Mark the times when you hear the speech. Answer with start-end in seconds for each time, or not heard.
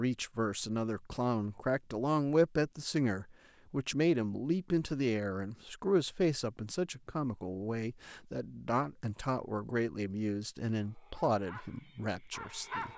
0.0-12.9.